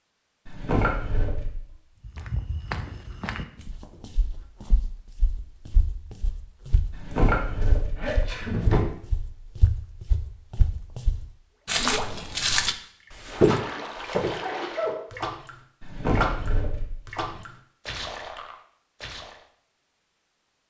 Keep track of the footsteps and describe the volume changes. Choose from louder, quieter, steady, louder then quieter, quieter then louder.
quieter then louder.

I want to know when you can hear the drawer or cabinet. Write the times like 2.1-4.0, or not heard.
0.5-1.6, 6.9-8.8, 15.8-17.2.